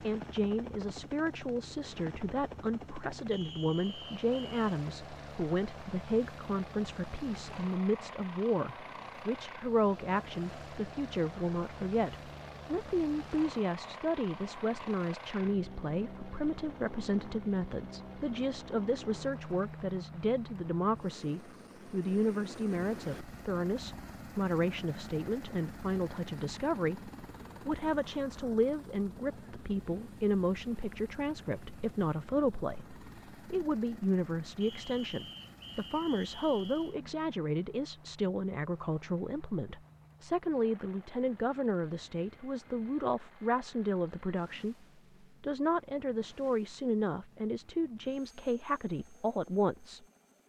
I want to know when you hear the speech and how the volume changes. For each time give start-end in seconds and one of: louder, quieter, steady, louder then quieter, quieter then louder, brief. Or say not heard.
0.0-50.0 steady.